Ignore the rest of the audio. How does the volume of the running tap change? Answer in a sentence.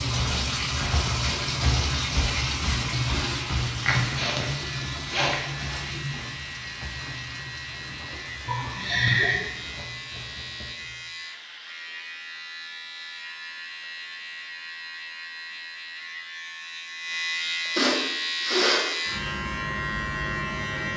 The volume of the running tap goes down.